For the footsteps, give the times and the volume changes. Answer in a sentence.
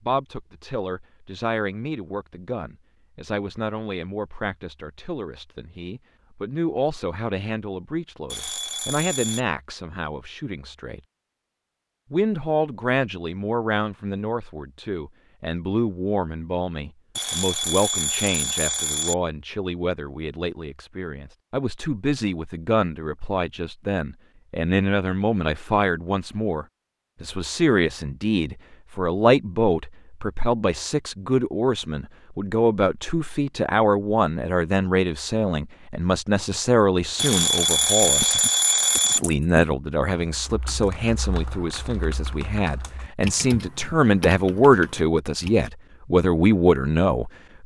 The footsteps can't be heard in this clip.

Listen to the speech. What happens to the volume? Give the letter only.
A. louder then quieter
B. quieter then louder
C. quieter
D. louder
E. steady
D.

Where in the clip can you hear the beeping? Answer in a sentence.
The beeping can be heard from 8.3 to 9.4 s, from 17.1 to 19.1 s and from 37.1 to 39.2 s.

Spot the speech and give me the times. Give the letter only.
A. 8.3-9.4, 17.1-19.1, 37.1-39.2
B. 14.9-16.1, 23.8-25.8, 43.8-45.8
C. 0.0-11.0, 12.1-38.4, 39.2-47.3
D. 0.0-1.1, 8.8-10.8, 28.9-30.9
C.